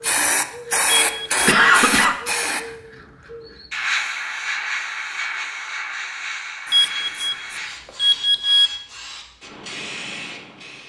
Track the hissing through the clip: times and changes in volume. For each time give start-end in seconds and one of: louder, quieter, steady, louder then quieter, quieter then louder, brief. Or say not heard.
0.0-10.8 quieter.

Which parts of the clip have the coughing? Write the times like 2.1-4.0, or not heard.
1.4-2.1.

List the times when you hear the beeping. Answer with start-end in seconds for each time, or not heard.
1.0-1.4, 6.7-8.7.